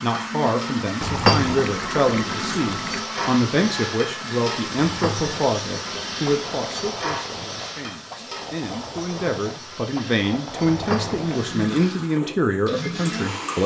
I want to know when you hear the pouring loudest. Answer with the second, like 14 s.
1 s.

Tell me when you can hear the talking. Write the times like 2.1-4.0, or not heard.
0.0-13.6.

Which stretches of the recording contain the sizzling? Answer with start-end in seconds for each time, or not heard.
0.0-13.6.